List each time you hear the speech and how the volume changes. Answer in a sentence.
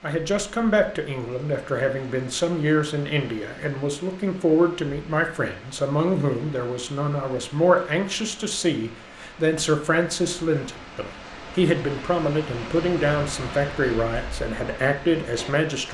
You can hear the speech from 0.0 to 15.8 s, at a steady volume.